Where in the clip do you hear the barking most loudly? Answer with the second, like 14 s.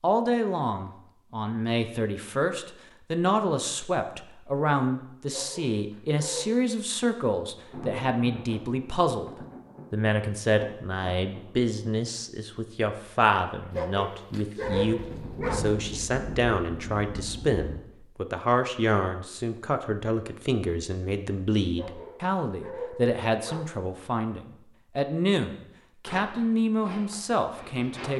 15 s.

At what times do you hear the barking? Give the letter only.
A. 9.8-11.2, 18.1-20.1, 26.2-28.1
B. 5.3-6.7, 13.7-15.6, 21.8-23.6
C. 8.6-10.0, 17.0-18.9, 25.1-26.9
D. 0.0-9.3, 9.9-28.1
B.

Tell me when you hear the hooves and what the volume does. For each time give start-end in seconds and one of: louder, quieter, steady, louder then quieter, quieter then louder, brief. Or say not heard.
not heard.